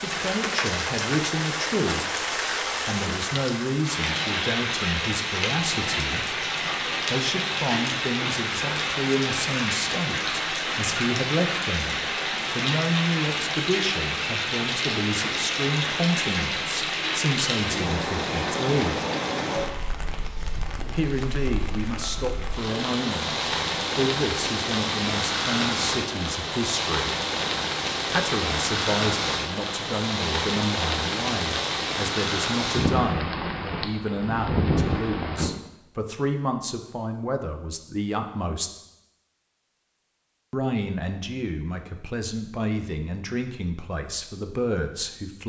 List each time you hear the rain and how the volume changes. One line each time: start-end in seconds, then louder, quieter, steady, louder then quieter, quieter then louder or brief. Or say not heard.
0.0-35.5 steady.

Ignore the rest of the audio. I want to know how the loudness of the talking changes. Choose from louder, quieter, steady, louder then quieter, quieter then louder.
steady.